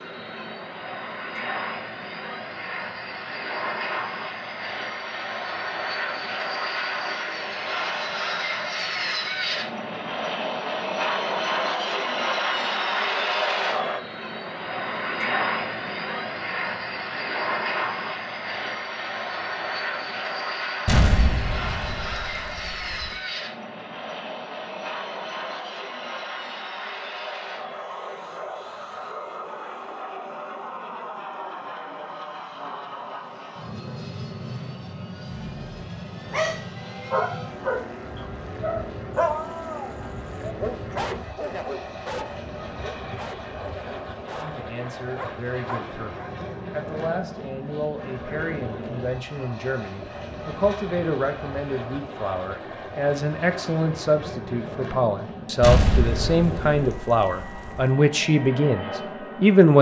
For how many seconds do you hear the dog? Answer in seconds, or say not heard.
10 s.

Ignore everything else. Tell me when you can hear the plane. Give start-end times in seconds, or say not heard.
0.0-59.7.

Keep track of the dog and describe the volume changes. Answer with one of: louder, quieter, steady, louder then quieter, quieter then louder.
quieter.